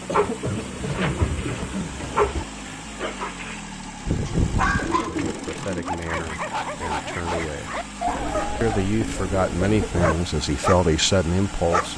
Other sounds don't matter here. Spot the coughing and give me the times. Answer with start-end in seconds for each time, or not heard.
0.1-1.9, 5.0-5.8, 9.6-10.2.